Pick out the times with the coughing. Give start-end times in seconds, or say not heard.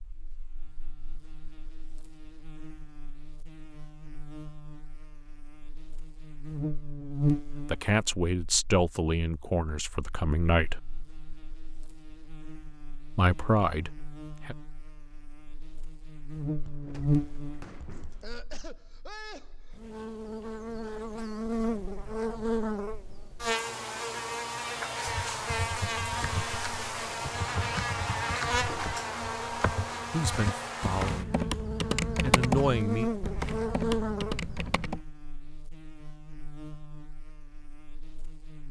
18.2-19.8.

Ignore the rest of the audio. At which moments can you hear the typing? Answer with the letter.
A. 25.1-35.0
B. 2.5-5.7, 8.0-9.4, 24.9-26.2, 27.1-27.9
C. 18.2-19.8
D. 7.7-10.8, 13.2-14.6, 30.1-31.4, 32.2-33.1
A.